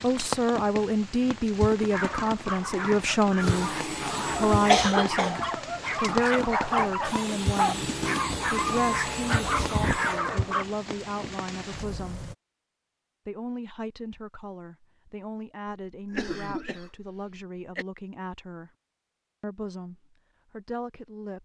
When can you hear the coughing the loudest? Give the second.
5 s.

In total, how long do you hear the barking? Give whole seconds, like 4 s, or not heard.
9 s.